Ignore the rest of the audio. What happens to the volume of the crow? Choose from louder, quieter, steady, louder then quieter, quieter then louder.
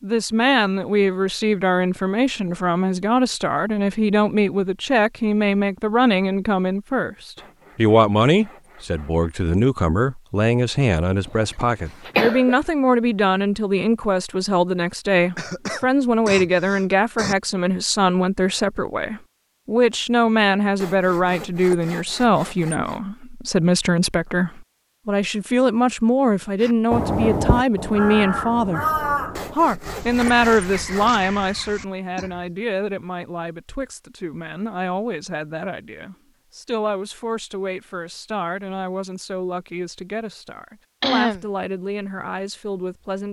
quieter.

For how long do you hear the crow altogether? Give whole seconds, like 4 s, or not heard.
6 s.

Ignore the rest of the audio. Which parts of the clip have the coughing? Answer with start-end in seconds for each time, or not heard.
11.2-12.6, 15.3-17.4, 41.0-41.5.